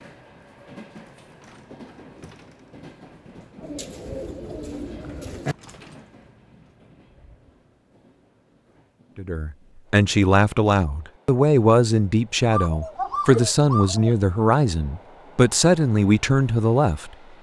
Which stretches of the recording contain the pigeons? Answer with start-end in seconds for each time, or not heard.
3.6-5.5, 12.5-14.2.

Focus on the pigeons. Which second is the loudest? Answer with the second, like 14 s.
13 s.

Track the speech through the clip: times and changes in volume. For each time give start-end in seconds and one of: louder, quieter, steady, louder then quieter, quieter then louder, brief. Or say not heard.
9.2-17.1 steady.